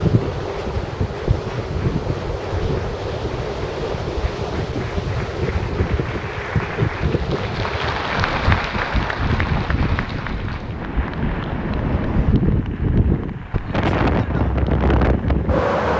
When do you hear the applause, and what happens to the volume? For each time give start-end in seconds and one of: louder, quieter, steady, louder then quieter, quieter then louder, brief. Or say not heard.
0.2-15.7 louder then quieter.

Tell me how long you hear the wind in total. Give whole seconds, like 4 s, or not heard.
16 s.